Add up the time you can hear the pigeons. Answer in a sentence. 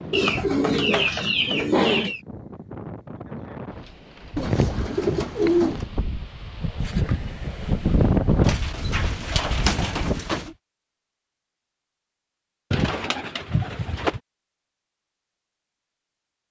The pigeons can be heard for 7 seconds in total.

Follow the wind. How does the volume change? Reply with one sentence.
The volume of the wind goes up.